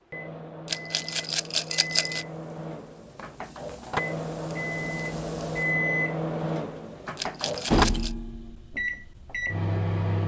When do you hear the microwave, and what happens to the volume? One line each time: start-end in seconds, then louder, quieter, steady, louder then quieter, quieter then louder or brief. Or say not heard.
0.0-10.2 louder then quieter.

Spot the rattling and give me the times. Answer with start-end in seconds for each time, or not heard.
0.7-2.2, 7.2-8.2.